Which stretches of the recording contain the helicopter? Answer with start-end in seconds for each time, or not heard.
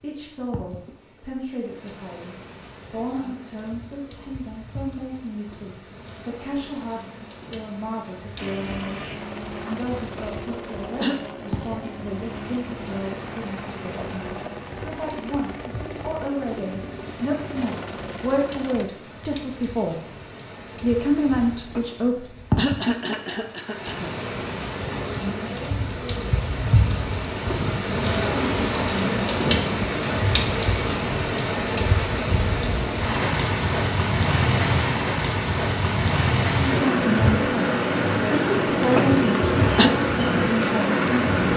8.3-18.9.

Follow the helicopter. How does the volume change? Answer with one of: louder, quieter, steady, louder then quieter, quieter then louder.
steady.